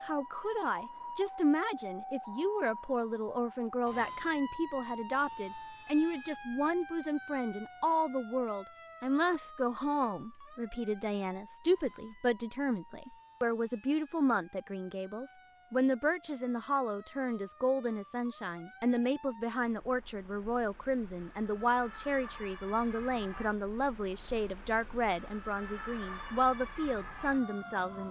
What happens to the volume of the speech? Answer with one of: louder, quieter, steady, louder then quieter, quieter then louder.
steady.